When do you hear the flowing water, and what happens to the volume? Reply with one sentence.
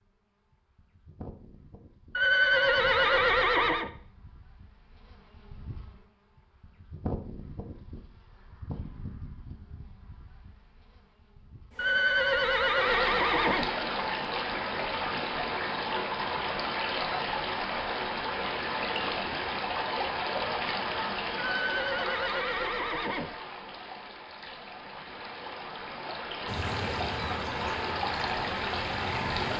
You can hear the flowing water from 12.8 to 29.5 s, getting quieter then louder.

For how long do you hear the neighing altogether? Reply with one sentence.
The neighing can be heard for 6 seconds in total.